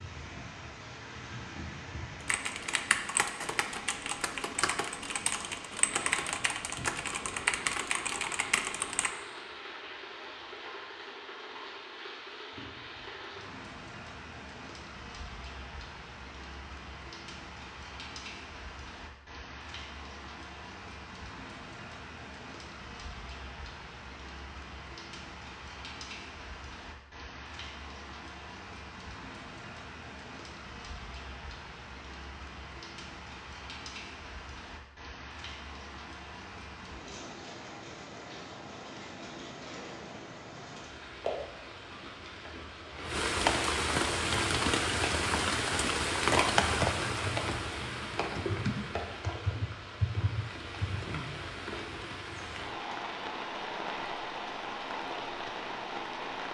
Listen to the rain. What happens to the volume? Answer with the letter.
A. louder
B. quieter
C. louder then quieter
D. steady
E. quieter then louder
A.